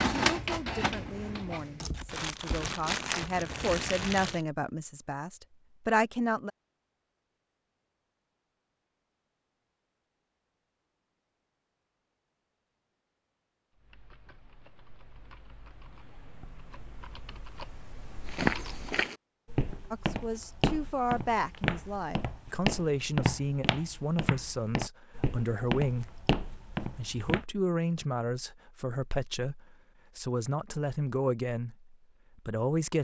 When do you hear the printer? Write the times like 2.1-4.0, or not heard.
0.0-1.9.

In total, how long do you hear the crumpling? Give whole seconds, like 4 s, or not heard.
3 s.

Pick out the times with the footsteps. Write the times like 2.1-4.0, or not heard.
18.2-27.4.